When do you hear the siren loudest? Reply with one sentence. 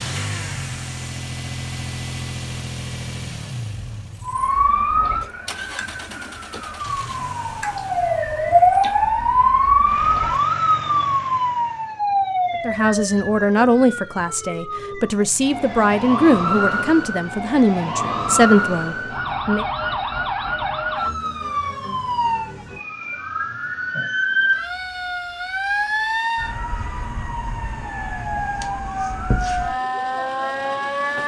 The loudest moment of the siren is at 9 seconds.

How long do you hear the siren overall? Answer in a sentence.
The siren can be heard for 27 seconds in total.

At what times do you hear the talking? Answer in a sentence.
You can hear the talking from 12.6 to 19.6 s.